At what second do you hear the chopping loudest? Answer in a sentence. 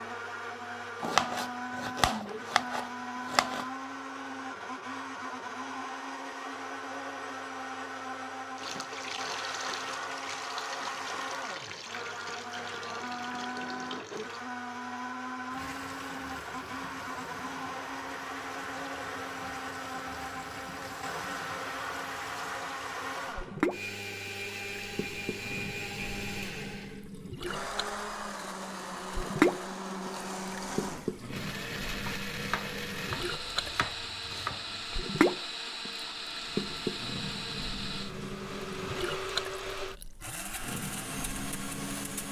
The loudest moment of the chopping is at 1 second.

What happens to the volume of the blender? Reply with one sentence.
The loudness of the blender stays about the same.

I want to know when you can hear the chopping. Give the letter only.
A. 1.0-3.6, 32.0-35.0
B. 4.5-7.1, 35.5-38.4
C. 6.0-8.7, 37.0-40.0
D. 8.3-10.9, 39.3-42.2
A.